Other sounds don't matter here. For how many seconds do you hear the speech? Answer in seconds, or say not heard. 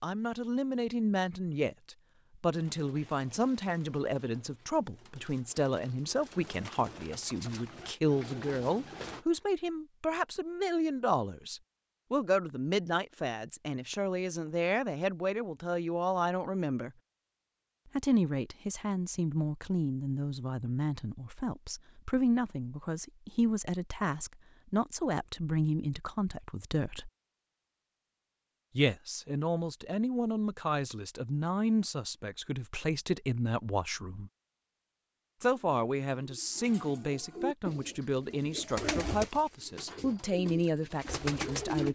38 s.